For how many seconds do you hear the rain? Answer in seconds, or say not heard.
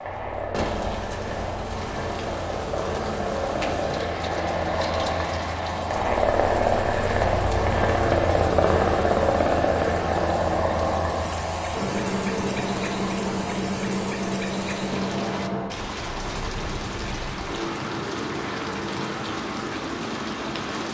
21 s.